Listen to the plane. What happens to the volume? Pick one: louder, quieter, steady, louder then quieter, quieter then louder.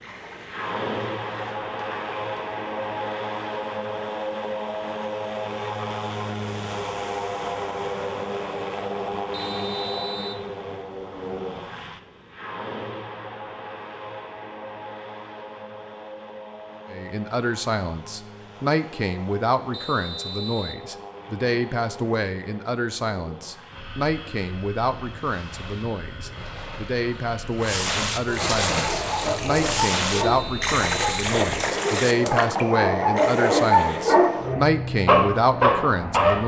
quieter then louder.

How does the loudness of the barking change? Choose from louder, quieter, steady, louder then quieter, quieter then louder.
louder.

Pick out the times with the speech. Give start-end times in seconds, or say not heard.
16.9-36.4.